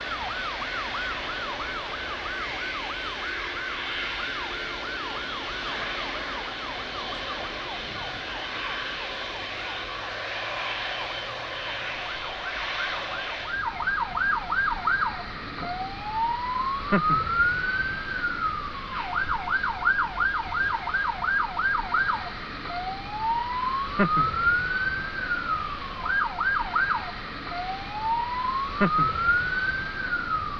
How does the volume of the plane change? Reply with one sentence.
The volume of the plane goes down.